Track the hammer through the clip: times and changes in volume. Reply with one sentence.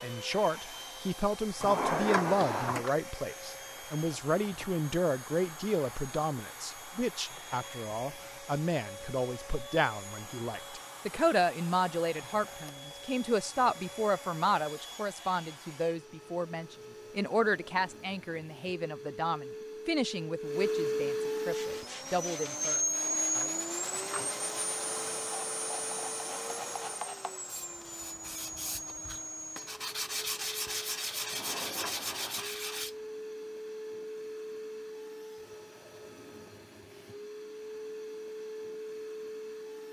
The hammer can't be heard in this clip.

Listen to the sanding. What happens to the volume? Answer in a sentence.
The volume of the sanding goes up.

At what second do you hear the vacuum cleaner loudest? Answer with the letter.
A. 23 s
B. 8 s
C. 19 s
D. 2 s
A.